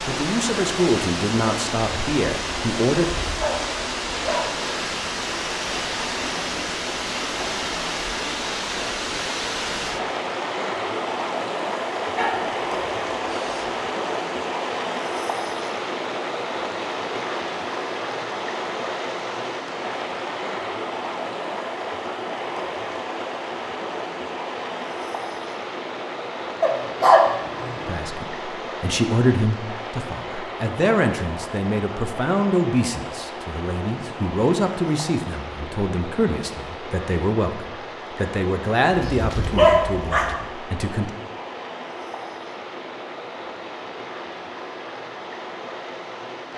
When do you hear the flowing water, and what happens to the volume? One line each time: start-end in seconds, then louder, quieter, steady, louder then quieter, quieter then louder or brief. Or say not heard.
0.0-46.5 quieter.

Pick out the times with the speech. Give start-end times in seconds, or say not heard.
0.1-3.0, 27.9-41.1.